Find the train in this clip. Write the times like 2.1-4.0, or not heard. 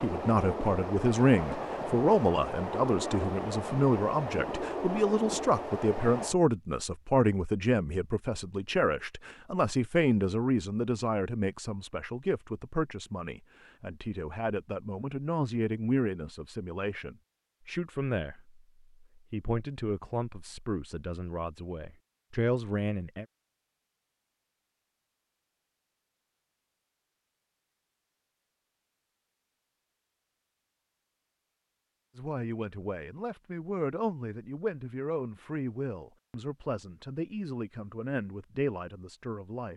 0.0-6.3.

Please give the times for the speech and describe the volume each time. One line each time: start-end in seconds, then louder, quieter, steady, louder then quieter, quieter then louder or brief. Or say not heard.
0.0-23.2 quieter
32.1-39.7 steady.